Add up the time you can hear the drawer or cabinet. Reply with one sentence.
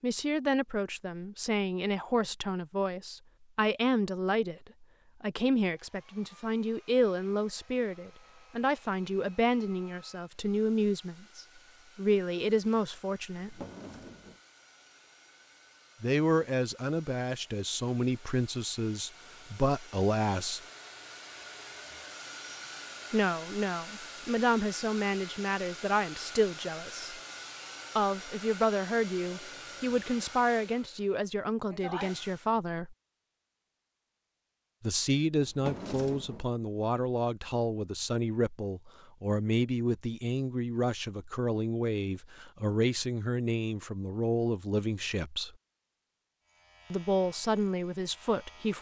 The drawer or cabinet can be heard for 2 seconds in total.